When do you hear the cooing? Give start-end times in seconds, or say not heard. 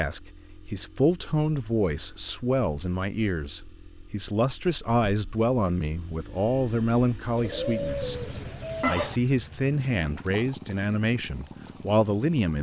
7.3-9.2.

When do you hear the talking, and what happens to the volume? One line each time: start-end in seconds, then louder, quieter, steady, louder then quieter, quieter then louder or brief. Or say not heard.
0.0-12.5 steady.